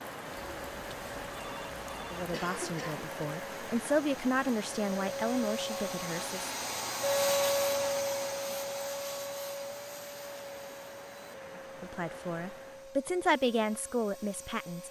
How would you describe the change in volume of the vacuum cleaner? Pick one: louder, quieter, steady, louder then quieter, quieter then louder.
louder then quieter.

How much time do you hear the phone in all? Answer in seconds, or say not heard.
2 s.